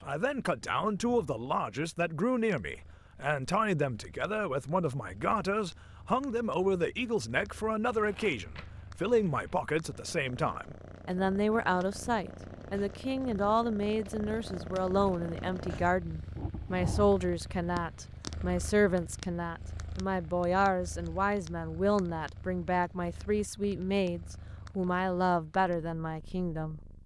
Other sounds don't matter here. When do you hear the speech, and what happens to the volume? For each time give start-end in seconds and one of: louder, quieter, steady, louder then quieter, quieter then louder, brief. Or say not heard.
0.0-26.8 steady.